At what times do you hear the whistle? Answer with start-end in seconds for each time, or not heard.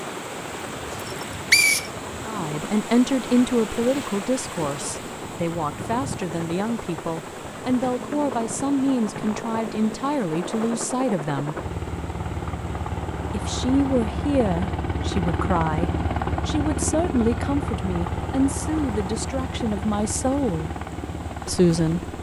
1.1-1.9.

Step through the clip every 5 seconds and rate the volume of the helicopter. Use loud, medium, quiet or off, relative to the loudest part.
medium, medium, loud, loud, medium.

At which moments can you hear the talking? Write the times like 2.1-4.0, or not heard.
2.2-11.6, 13.3-20.7, 21.4-22.0.